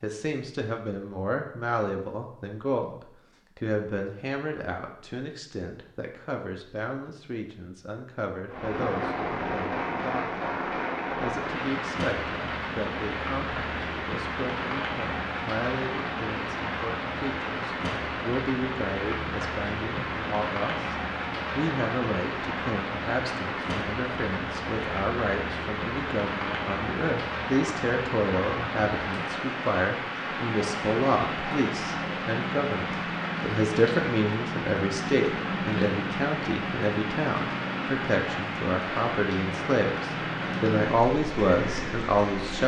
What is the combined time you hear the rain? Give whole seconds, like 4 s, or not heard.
34 s.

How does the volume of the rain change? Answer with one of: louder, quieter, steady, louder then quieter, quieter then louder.
steady.